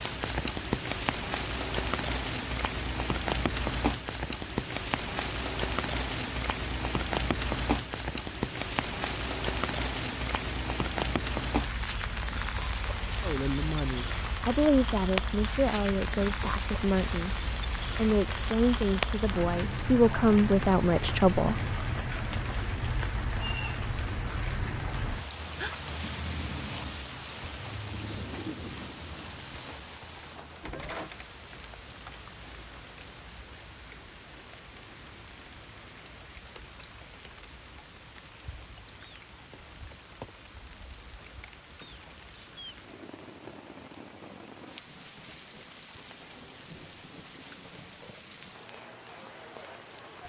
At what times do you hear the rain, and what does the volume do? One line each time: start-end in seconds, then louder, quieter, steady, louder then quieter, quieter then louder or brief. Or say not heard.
0.0-50.2 quieter.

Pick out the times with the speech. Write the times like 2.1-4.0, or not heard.
13.2-21.6.